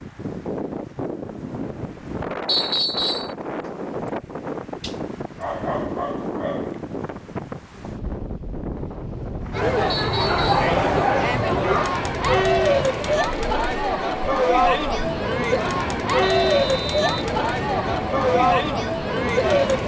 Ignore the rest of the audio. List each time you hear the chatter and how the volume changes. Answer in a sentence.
The chatter can be heard from 9.5 to 19.8 s, at a steady volume.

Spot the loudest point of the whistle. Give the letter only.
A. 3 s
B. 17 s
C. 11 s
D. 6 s
A.